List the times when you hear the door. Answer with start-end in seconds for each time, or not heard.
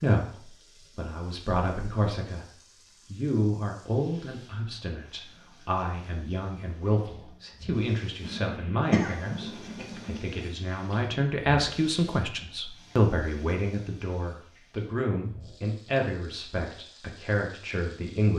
not heard.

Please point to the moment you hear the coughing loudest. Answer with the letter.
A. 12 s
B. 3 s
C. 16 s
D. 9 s
D.